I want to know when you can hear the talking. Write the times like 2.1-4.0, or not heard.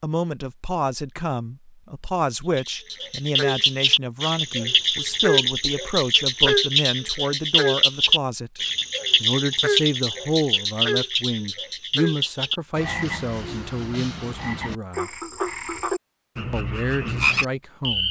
0.0-8.6, 9.2-15.1, 16.5-18.0.